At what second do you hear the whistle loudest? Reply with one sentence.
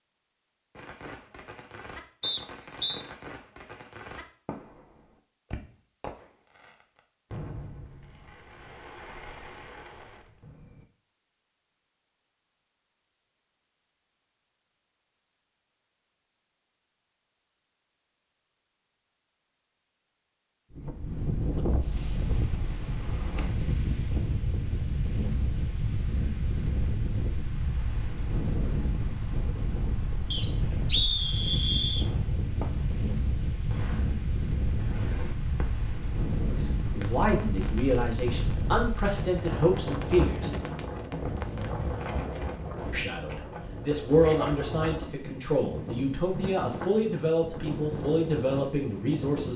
The volume of the whistle peaks at 31 seconds.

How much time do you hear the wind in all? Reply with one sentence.
You can hear the wind for 29 seconds altogether.